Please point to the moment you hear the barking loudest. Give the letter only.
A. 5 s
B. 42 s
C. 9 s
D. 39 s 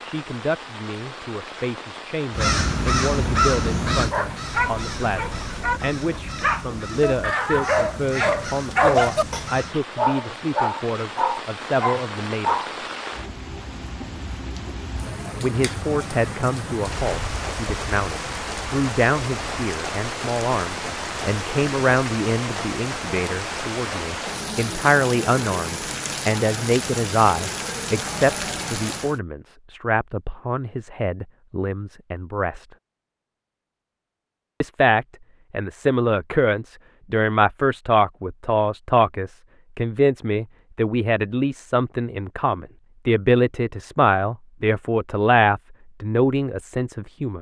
C.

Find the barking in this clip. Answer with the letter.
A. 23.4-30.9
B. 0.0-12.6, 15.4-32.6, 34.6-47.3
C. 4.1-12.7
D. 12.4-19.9
C.